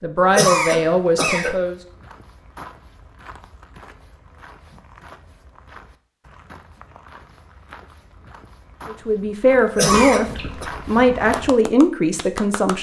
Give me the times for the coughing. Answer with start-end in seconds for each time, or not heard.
0.2-1.6, 9.6-10.7.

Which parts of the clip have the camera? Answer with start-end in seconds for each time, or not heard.
not heard.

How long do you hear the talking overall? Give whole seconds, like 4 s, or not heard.
6 s.